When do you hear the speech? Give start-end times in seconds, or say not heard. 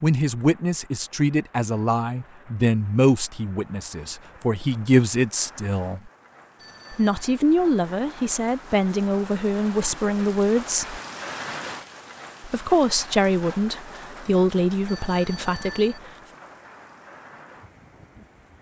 0.0-6.1, 6.9-11.0, 12.4-16.0.